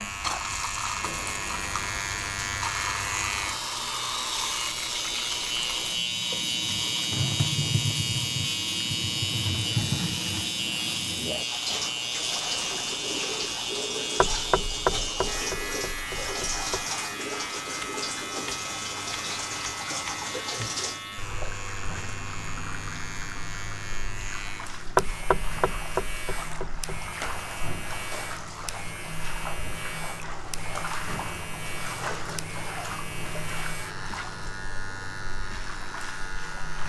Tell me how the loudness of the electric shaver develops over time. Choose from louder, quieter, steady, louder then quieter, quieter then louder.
quieter.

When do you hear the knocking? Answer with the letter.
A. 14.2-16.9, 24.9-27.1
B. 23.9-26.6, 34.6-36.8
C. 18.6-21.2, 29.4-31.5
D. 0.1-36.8
A.